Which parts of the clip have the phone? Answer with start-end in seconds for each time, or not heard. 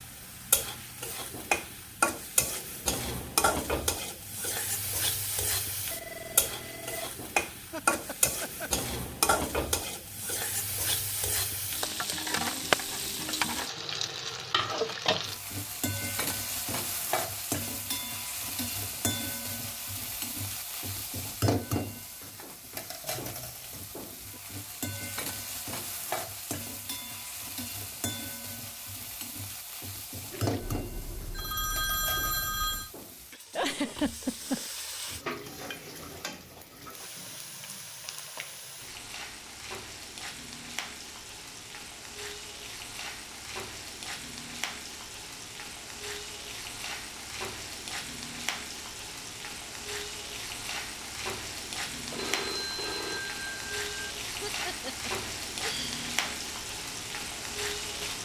5.9-7.2, 30.3-32.9, 52.1-54.1.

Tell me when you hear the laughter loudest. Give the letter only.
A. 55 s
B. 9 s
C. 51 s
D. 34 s
D.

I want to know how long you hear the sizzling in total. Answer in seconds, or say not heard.
58 s.